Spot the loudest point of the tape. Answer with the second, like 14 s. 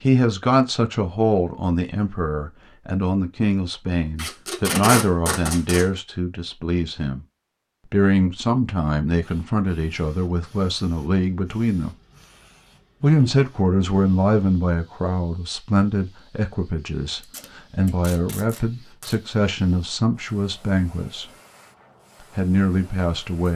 5 s.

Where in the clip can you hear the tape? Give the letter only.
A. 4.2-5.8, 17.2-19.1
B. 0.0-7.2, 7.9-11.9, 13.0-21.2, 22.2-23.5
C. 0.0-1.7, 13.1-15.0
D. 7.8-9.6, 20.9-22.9
A.